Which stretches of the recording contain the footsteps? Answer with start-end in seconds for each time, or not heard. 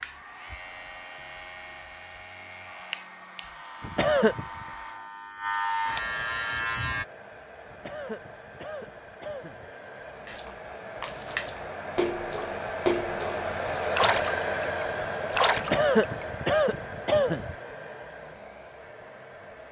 not heard.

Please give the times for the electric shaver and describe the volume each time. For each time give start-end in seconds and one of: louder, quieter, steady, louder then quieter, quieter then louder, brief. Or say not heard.
0.0-7.0 louder.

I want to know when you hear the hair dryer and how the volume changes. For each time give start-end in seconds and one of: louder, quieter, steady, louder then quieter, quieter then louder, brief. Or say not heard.
0.0-19.6 louder then quieter.